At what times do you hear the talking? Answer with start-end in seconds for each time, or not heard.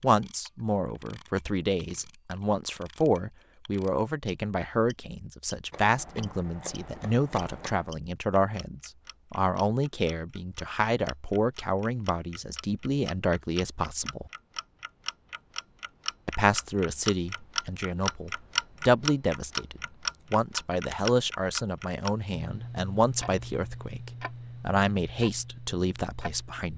0.0-14.3, 16.2-26.7.